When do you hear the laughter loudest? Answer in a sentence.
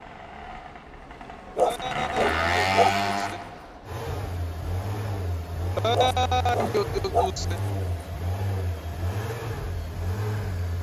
The volume of the laughter peaks at 6 seconds.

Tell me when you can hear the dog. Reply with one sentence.
The dog can be heard from 1.6 to 3.0 s and from 5.9 to 7.3 s.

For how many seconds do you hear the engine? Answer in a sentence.
You can hear the engine for 11 seconds altogether.